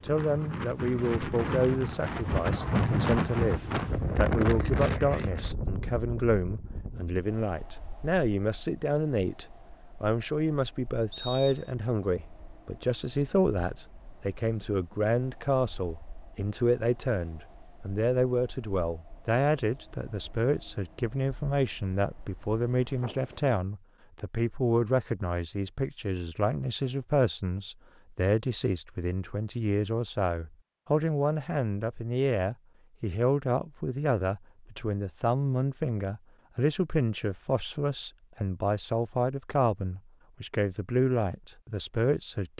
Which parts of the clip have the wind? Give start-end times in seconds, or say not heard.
0.0-23.6.